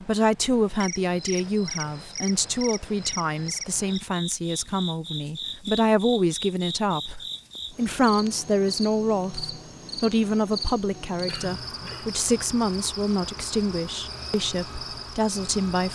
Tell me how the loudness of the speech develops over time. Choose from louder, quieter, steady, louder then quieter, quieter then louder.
steady.